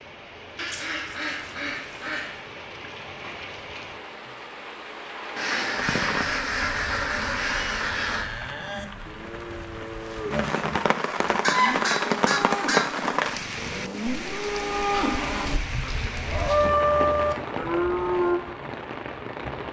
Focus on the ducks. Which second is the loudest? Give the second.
12 s.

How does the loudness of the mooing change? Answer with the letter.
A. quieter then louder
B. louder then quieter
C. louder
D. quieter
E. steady
C.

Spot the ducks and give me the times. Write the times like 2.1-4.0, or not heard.
0.6-2.4, 5.3-8.2, 11.4-12.9, 14.9-16.4.